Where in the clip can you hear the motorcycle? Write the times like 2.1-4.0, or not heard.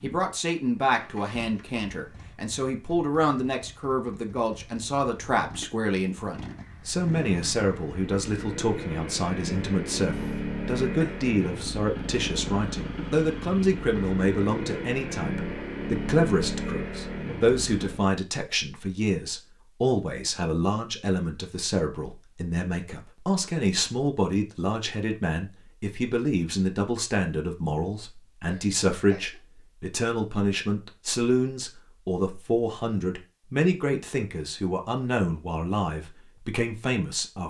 0.0-18.1.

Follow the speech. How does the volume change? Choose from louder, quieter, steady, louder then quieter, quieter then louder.
steady.